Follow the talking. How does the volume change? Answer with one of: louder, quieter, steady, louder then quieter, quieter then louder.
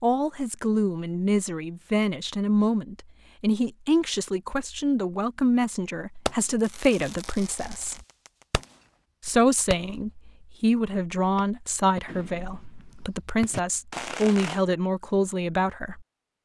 steady.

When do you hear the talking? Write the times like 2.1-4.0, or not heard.
0.0-8.0, 9.2-16.0.